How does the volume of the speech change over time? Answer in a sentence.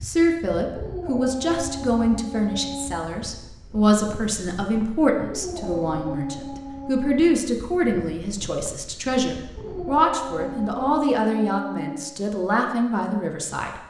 The volume of the speech stays about the same.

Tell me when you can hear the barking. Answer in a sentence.
The barking can be heard from 0.7 to 3.0 s, from 5.2 to 7.2 s and from 9.6 to 12.1 s.